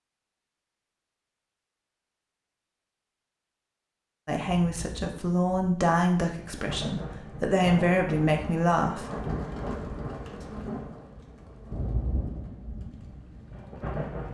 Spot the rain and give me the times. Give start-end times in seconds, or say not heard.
4.4-14.3.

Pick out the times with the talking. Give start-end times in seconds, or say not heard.
4.2-9.1.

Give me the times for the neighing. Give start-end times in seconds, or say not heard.
not heard.